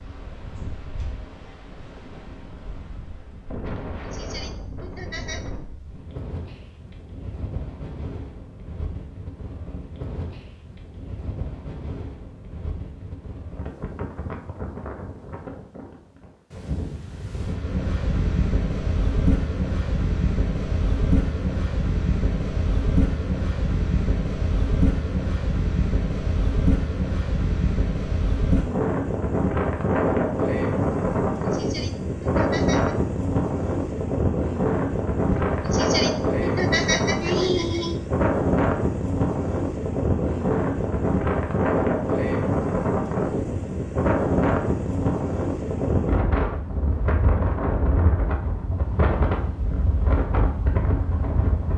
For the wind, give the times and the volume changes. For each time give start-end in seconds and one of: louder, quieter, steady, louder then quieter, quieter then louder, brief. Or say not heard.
0.0-51.7 louder.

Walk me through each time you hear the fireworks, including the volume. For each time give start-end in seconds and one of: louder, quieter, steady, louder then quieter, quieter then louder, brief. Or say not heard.
not heard.